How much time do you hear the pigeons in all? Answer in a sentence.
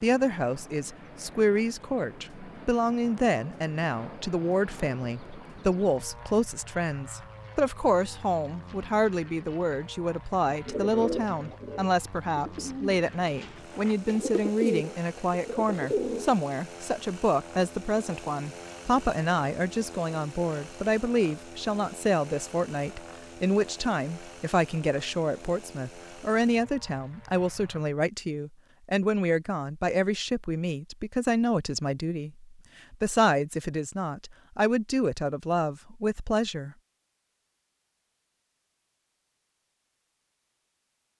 The pigeons can be heard for 6 seconds in total.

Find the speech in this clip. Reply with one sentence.
The speech can be heard from 0.0 to 36.8 s.